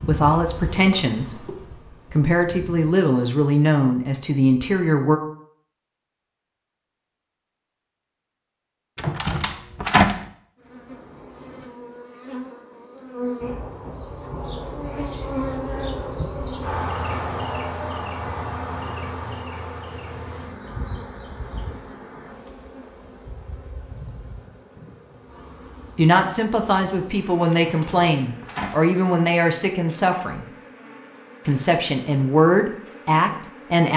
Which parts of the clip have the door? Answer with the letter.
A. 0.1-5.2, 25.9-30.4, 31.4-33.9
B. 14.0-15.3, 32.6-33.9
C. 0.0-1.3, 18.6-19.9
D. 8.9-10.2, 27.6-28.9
D.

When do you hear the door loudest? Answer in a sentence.
The loudest moment of the door is at 10 seconds.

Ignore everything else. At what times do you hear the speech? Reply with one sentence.
The speech can be heard from 0.1 to 5.2 s, from 25.9 to 30.4 s and from 31.4 to 33.9 s.